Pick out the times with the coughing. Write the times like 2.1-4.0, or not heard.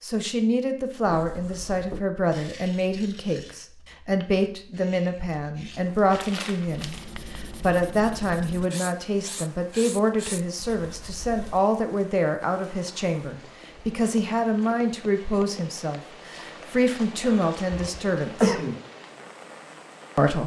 17.2-18.8.